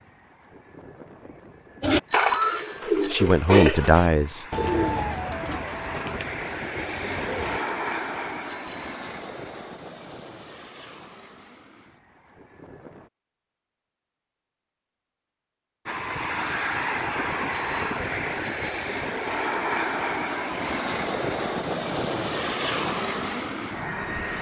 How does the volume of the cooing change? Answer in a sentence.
The loudness of the cooing goes down.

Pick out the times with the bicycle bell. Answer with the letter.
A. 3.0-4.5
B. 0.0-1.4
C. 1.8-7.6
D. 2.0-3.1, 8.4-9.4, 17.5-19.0
D.